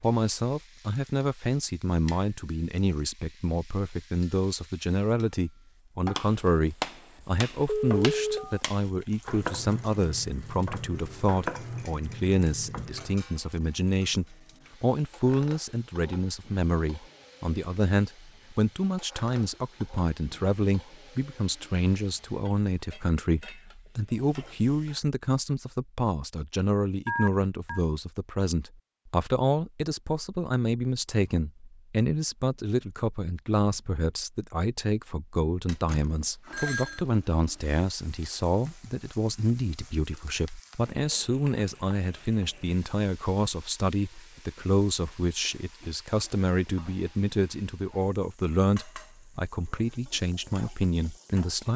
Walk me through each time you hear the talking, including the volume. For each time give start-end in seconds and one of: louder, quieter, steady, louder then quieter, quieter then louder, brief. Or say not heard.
0.0-51.7 steady.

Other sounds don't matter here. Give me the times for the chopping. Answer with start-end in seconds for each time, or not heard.
6.2-13.2.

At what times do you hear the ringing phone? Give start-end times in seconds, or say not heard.
7.2-8.6, 27.1-27.8, 35.6-37.0.